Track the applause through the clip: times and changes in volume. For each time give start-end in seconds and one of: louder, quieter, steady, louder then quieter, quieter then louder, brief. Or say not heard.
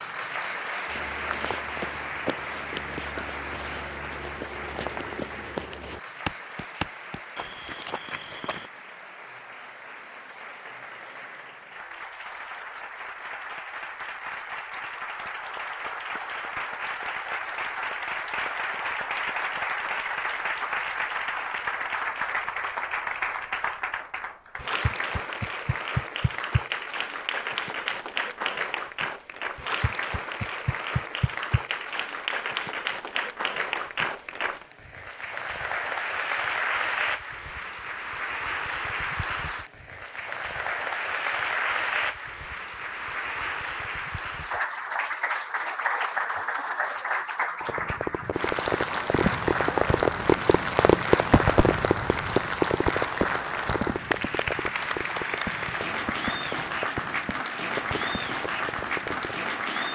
0.0-59.9 louder.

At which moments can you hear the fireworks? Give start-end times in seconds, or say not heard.
47.6-59.5.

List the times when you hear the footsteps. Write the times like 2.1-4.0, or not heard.
0.8-8.7.